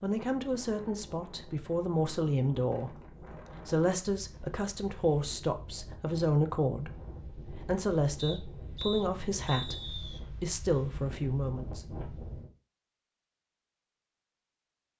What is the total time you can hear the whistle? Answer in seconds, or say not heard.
2 s.